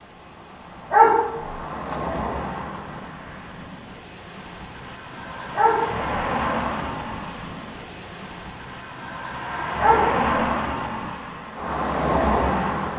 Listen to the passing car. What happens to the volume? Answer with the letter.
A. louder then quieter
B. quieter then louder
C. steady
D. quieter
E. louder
B.